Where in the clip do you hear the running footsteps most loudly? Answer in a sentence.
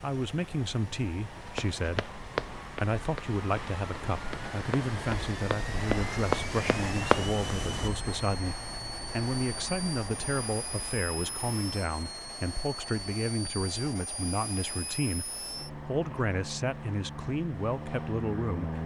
The volume of the running footsteps peaks at 7 seconds.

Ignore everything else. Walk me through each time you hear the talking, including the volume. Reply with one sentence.
The talking can be heard from 0.0 to 18.8 s, at a steady volume.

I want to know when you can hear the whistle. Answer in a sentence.
You can't hear the whistle here.